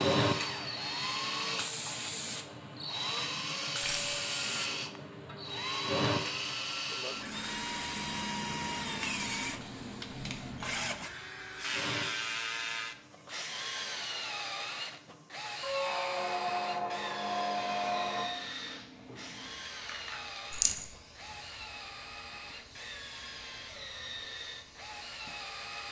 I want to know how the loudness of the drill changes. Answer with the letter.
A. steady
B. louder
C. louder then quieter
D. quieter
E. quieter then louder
D.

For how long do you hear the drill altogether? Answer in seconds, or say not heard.
26 s.